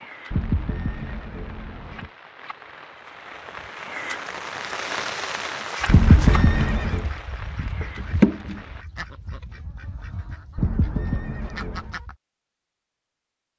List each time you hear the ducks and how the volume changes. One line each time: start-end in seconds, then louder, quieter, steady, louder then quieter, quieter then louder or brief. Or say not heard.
5.9-12.2 louder then quieter.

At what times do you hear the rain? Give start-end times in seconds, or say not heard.
0.0-8.8.